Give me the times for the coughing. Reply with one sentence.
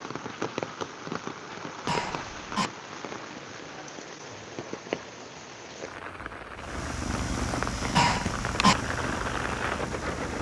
The coughing can be heard from 1.9 to 2.7 s and from 7.9 to 8.8 s.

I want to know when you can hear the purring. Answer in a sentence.
You can hear the purring from 6.5 to 10.3 s.